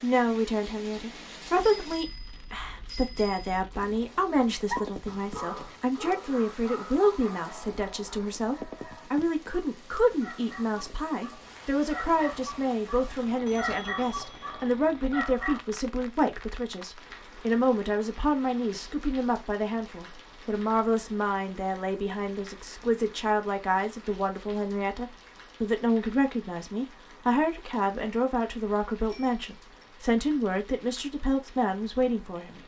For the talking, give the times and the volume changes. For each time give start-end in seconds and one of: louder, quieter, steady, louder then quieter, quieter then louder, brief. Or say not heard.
0.0-32.6 steady.